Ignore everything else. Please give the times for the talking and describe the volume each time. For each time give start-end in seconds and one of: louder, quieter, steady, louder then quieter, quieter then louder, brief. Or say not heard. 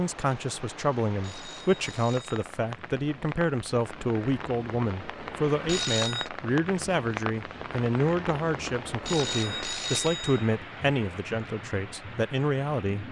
0.0-13.0 steady.